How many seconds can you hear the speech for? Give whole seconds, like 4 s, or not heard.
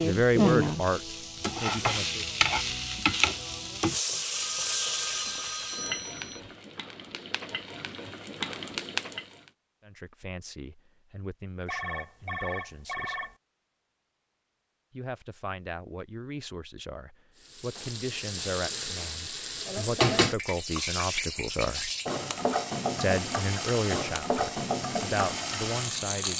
16 s.